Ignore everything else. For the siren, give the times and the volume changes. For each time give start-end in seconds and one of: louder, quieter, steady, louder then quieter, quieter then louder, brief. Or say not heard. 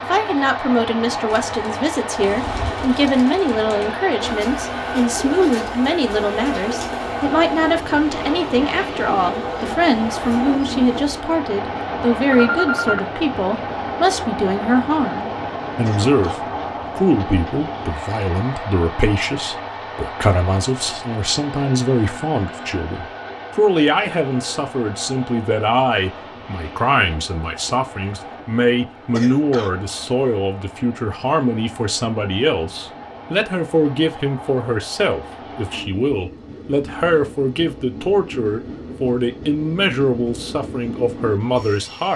not heard.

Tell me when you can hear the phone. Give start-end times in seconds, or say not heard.
12.3-13.1.